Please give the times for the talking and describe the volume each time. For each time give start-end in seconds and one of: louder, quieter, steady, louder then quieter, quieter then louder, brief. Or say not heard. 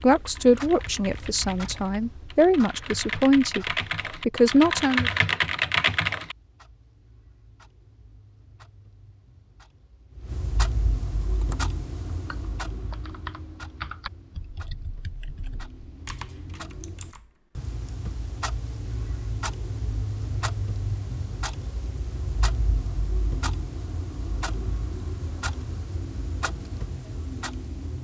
0.0-5.1 quieter then louder.